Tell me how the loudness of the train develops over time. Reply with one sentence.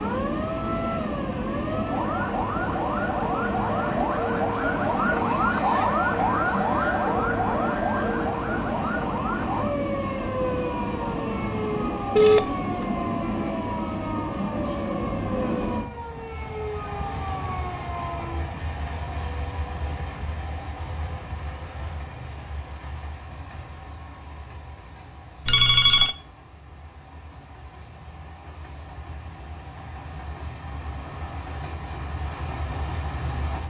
The loudness of the train goes down.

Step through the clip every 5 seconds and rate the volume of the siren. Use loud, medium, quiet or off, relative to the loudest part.
loud, loud, medium, medium, off, off, off.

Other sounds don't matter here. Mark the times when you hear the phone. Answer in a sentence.
You can hear the phone from 6.2 to 8.2 s, from 12.2 to 12.8 s and from 25.4 to 26.1 s.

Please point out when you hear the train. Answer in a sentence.
You can hear the train from 0.0 to 33.6 s.